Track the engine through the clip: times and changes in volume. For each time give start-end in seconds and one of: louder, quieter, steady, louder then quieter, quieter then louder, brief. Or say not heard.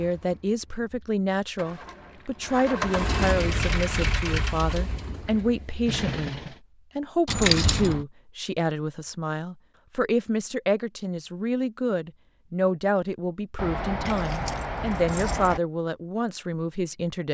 0.0-6.5 louder then quieter.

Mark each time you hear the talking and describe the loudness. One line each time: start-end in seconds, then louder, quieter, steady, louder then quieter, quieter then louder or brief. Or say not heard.
0.0-17.2 steady.